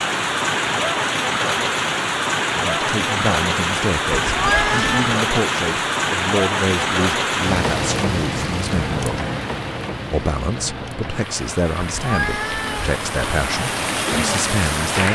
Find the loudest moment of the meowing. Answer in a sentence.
The loudest moment of the meowing is at 5 seconds.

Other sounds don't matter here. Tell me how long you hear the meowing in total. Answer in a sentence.
The meowing can be heard for 2 seconds in total.